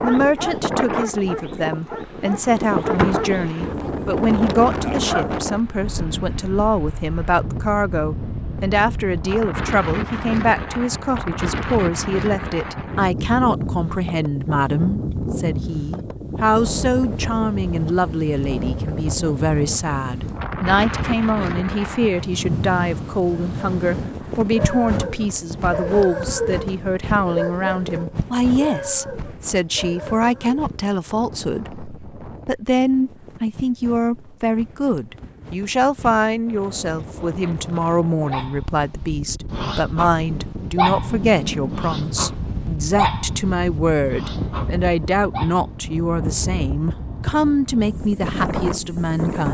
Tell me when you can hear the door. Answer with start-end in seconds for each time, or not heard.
2.4-3.4.